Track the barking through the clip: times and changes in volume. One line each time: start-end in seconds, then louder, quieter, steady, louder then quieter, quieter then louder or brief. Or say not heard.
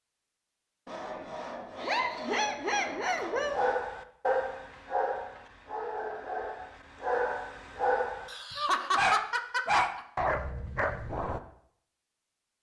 3.4-8.3 quieter then louder
8.9-11.4 brief.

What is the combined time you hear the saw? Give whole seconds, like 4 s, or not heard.
3 s.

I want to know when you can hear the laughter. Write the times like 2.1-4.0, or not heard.
1.8-3.6, 8.2-10.0.